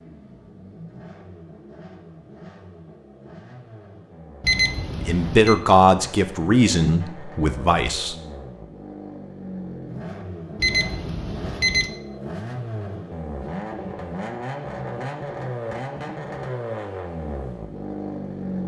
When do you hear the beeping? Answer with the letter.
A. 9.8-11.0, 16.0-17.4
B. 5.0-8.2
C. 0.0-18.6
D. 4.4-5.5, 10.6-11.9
D.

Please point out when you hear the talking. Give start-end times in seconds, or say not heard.
5.0-8.2.